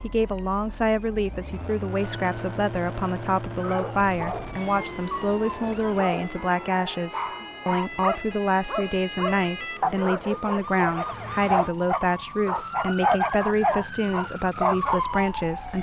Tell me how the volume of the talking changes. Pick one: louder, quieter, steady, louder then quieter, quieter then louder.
steady.